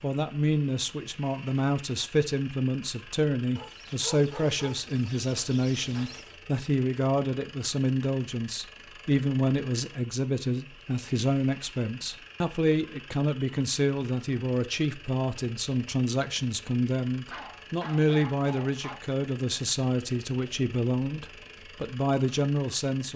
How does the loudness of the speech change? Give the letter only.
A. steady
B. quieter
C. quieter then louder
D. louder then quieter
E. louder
A.